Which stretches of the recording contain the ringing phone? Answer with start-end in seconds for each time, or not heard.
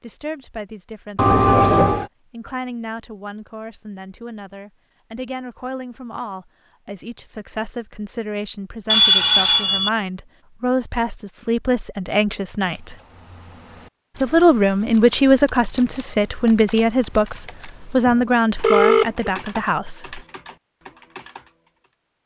1.1-2.0, 8.8-9.9, 18.1-19.3.